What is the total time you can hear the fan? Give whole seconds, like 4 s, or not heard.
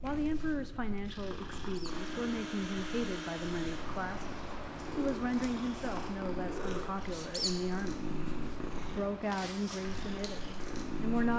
11 s.